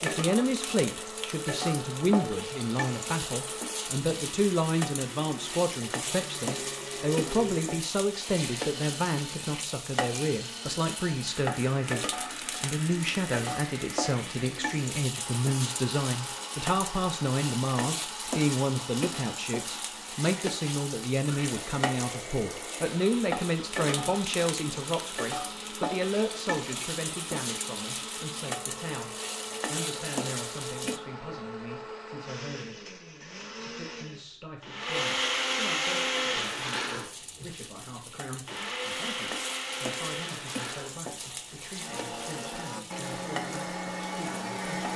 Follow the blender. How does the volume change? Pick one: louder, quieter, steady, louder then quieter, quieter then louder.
louder.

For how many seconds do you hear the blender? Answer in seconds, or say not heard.
45 s.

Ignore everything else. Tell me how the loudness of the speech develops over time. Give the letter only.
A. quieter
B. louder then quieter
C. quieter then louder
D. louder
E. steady
A.